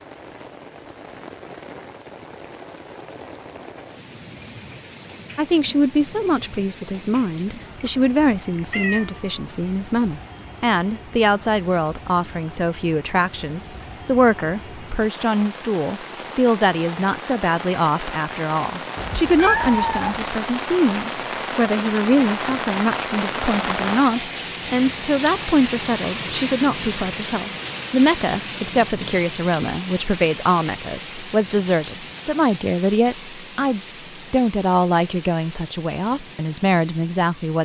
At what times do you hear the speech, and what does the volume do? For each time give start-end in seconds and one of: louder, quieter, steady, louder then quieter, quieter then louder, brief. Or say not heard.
5.3-37.6 steady.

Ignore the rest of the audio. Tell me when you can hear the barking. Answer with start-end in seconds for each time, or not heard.
not heard.